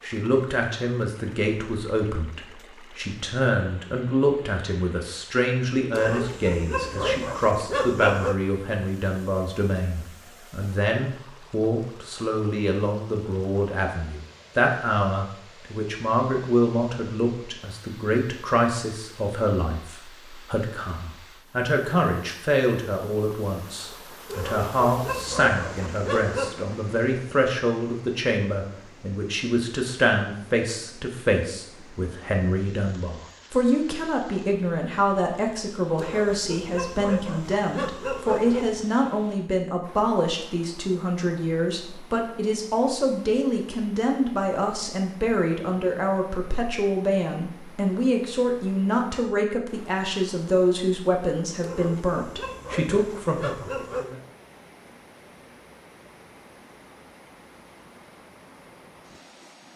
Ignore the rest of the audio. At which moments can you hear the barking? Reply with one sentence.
The barking can be heard from 5.9 to 8.3 s, from 24.2 to 26.6 s, from 36.0 to 38.8 s and from 51.6 to 54.1 s.